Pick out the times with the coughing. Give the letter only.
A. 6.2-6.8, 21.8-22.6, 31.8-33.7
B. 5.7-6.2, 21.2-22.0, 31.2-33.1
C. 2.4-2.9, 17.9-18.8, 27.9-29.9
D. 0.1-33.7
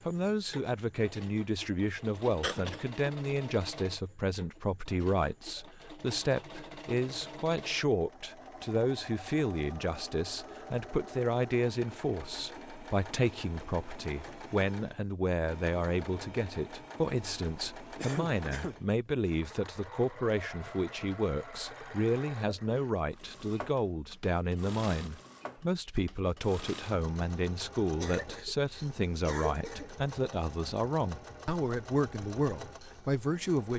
C.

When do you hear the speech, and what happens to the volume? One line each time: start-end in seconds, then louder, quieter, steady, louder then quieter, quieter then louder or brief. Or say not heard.
0.1-33.7 steady.